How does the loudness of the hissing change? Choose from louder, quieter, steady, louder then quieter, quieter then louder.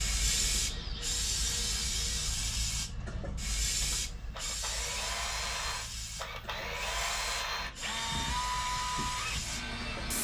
quieter.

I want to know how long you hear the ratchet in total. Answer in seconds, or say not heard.
not heard.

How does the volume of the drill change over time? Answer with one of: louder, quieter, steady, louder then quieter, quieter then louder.
quieter then louder.